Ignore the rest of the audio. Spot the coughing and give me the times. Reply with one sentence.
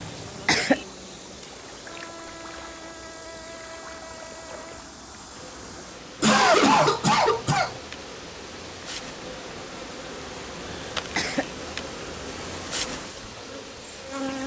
You can hear the coughing from 0.0 to 0.8 s, from 6.2 to 7.8 s and from 10.7 to 11.5 s.